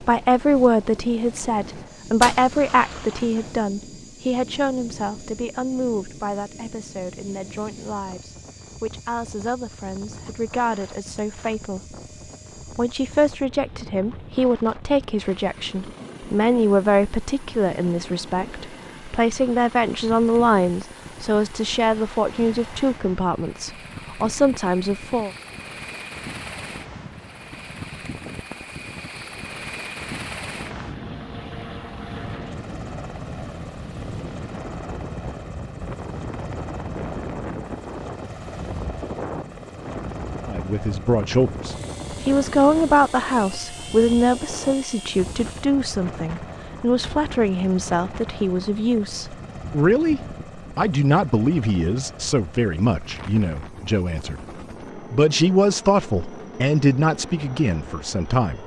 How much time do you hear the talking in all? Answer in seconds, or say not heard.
43 s.